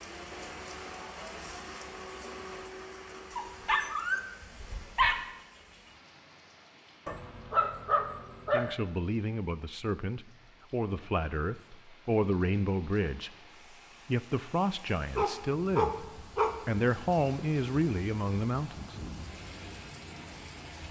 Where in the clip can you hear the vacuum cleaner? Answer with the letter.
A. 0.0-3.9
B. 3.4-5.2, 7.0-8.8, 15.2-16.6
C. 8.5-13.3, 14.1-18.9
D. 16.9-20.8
A.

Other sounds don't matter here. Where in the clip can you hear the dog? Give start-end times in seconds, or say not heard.
3.4-5.2, 7.0-8.8, 15.2-16.6.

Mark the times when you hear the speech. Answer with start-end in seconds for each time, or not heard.
8.5-13.3, 14.1-18.9.